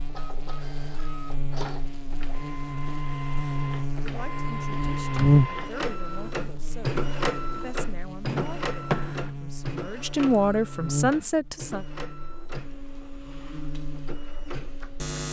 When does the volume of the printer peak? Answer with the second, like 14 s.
7 s.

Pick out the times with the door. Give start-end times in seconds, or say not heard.
5.0-5.5, 8.2-9.3.